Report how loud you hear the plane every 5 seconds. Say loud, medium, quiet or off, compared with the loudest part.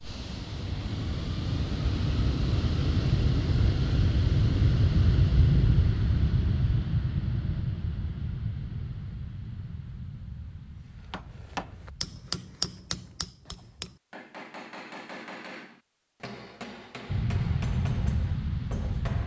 loud, loud, quiet, loud.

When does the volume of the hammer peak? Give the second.
12 s.